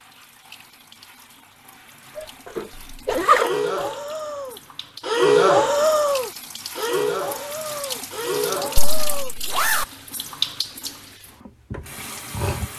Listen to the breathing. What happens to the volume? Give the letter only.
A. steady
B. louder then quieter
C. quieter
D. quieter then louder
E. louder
B.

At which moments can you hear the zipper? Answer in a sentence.
You can hear the zipper from 2.1 to 3.5 s and from 8.8 to 9.8 s.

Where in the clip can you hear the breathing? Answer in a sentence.
The breathing can be heard from 2.7 to 9.3 s.